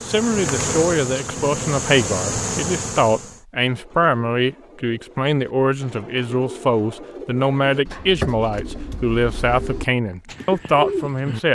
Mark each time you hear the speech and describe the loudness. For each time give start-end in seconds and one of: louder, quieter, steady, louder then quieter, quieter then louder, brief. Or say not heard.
0.1-11.4 steady.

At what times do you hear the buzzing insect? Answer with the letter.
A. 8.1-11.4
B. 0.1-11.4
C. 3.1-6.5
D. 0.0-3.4
D.